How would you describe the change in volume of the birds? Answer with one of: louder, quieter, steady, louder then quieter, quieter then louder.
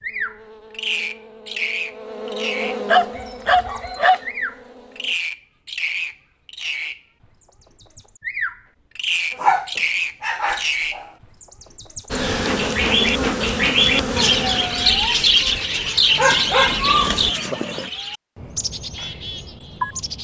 louder then quieter.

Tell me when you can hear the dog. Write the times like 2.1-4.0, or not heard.
2.6-4.2, 9.3-11.1, 16.1-17.9.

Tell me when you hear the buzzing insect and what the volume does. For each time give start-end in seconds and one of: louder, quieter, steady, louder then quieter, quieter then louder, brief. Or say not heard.
0.0-5.2 louder then quieter
12.1-17.4 quieter then louder.